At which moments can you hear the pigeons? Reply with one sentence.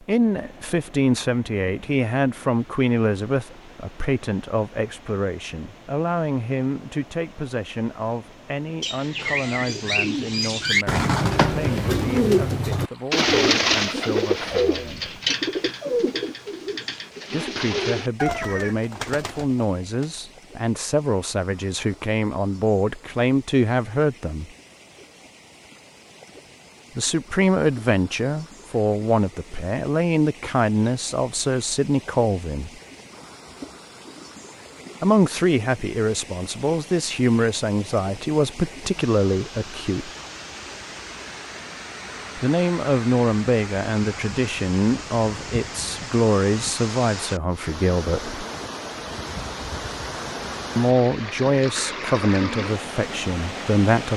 You can hear the pigeons from 8.8 to 20.2 s.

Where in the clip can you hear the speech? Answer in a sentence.
You can hear the speech from 0.1 to 15.2 s, from 17.3 to 24.5 s, from 26.9 to 32.7 s, from 35.0 to 40.1 s, from 42.4 to 48.4 s and from 50.8 to 54.1 s.